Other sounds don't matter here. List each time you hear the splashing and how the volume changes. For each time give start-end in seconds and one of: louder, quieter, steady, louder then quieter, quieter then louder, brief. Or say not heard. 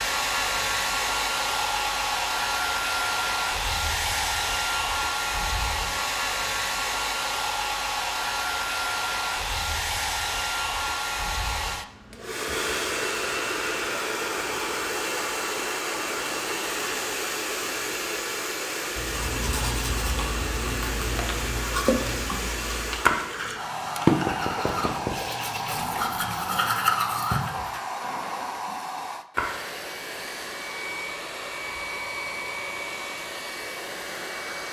21.8-22.4 brief
23.1-24.9 brief
25.6-29.8 louder then quieter.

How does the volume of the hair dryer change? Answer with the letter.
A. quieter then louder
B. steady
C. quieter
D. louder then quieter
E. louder
C.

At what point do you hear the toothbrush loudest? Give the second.
27 s.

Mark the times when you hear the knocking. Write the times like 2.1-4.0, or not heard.
24.1-25.4.